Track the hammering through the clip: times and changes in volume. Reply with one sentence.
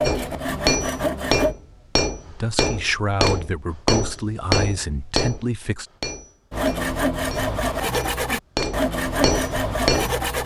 You can hear the hammering from 0.0 to 10.2 s, getting quieter then louder.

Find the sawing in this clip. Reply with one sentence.
You can hear the sawing from 0.0 to 1.6 s and from 6.5 to 10.4 s.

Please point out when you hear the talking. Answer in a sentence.
The talking can be heard from 2.2 to 5.8 s.